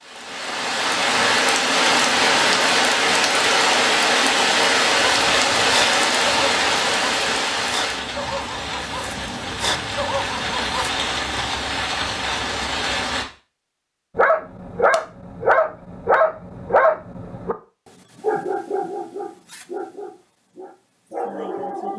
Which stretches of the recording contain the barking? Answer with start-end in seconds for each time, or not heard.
5.0-10.9, 14.2-17.6, 18.1-21.9.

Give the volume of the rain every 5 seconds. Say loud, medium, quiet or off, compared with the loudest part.
loud, loud, medium, off, off.